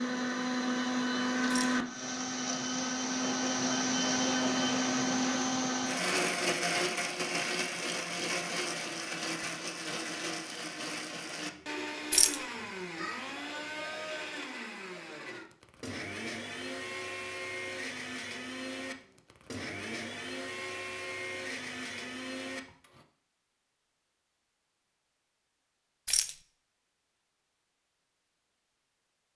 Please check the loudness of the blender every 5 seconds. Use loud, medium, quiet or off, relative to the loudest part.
loud, loud, medium, medium, medium, off.